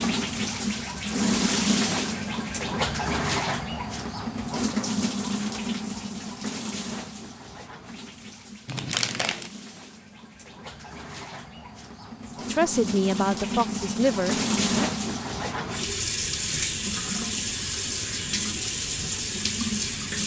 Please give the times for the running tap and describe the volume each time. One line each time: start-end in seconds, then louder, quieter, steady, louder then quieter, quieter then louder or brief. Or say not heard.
0.0-20.2 quieter then louder.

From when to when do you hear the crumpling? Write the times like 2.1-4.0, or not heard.
8.7-9.5.